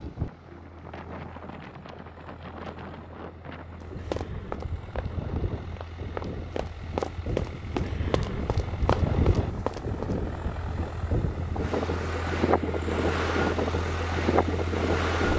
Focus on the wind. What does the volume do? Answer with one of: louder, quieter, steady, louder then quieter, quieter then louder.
louder.